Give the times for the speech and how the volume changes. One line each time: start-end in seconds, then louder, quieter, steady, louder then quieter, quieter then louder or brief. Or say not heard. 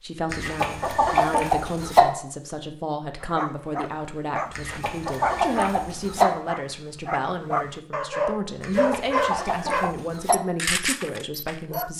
0.0-11.9 steady.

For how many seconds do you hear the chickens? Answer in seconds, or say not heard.
5 s.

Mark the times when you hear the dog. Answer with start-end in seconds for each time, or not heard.
3.2-11.9.